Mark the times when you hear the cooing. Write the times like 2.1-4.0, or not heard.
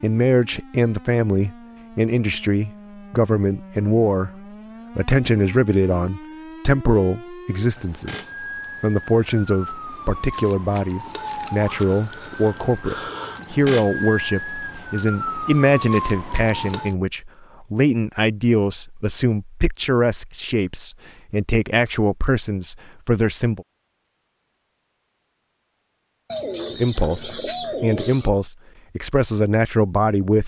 26.3-28.3.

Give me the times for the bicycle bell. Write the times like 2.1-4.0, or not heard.
not heard.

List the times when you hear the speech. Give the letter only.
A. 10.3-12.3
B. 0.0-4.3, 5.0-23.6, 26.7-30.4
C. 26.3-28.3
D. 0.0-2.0
B.